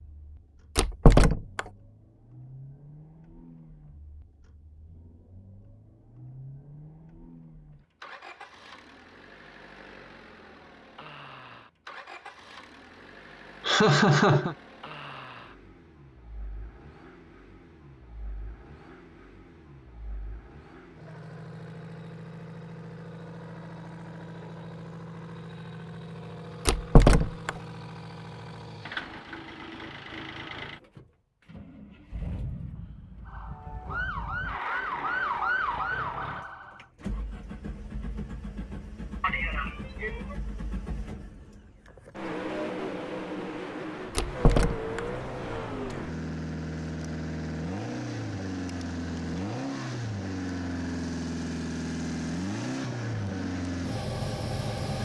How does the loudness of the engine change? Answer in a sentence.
The volume of the engine goes up.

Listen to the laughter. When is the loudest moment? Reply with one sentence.
The volume of the laughter peaks at 14 seconds.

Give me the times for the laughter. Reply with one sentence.
You can hear the laughter from 13.6 to 14.6 s and from 39.2 to 40.4 s.